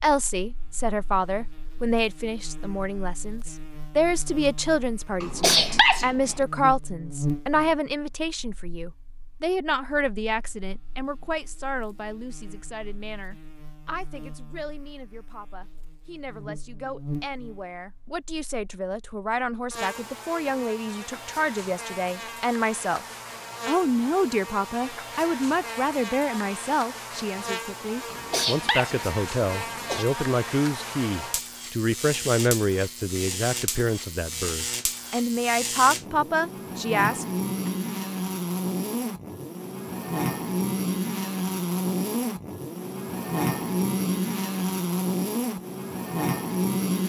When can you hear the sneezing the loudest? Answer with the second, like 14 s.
6 s.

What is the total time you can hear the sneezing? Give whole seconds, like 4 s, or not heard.
3 s.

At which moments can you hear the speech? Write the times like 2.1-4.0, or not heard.
0.0-23.0, 23.6-37.7.